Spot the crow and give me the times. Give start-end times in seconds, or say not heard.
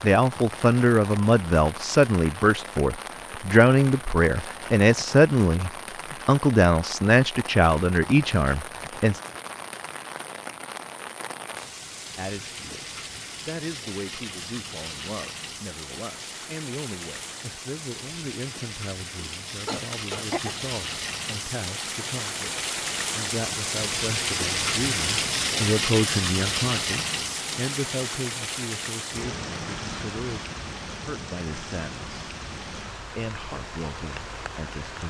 not heard.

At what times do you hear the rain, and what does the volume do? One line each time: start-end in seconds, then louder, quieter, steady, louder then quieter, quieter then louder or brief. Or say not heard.
0.0-35.0 louder then quieter.